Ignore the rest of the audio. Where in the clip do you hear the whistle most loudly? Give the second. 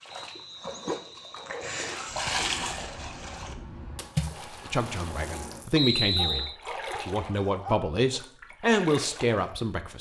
6 s.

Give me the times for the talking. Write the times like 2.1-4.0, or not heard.
4.7-9.9.